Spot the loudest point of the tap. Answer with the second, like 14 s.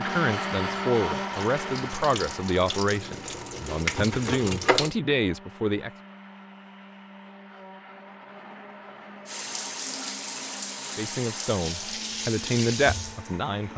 4 s.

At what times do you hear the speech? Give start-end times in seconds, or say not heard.
0.0-5.9, 10.9-13.7.